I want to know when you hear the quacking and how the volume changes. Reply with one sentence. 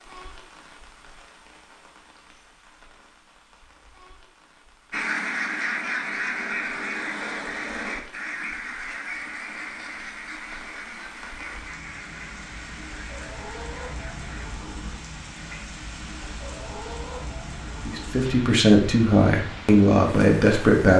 The quacking can be heard from 4.9 to 14.5 s, getting quieter.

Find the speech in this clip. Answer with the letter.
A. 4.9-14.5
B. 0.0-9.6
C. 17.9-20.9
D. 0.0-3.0
C.